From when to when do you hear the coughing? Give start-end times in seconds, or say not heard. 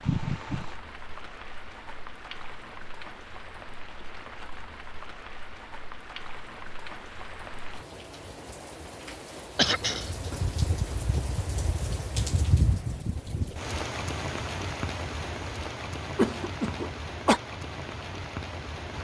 0.0-0.8, 9.6-10.2, 16.1-17.4.